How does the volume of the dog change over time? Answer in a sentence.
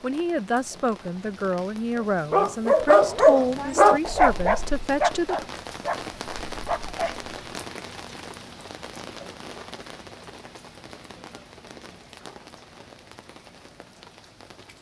The loudness of the dog goes down.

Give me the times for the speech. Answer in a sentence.
The speech can be heard from 0.0 to 5.5 s.